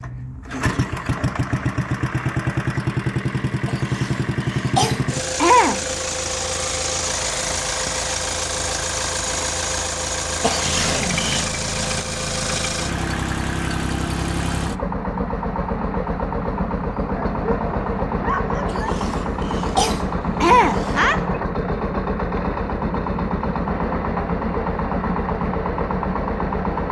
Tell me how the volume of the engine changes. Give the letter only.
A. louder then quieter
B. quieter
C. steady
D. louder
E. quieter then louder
C.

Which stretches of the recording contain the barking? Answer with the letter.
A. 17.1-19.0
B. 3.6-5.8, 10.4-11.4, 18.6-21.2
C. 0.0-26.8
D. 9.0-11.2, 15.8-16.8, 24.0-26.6
A.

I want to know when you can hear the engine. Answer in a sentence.
The engine can be heard from 0.0 to 26.8 s.